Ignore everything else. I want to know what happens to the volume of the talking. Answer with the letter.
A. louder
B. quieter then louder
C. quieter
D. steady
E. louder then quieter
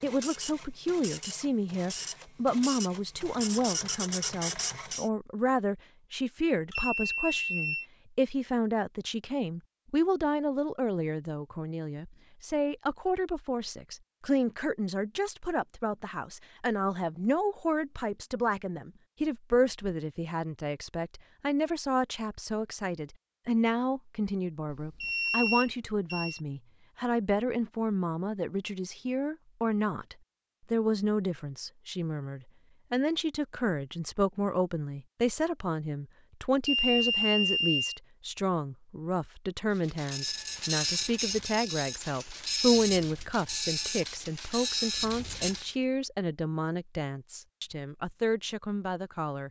D.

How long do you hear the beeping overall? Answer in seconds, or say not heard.
4 s.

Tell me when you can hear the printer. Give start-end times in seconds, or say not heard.
0.0-5.1, 39.8-45.8.